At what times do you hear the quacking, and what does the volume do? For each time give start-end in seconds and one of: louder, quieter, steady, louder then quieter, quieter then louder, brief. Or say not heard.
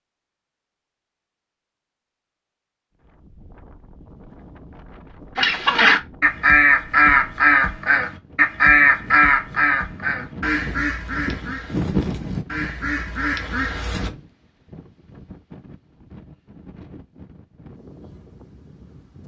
5.3-14.1 quieter.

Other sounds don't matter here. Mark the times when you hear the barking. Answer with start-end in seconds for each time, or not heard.
not heard.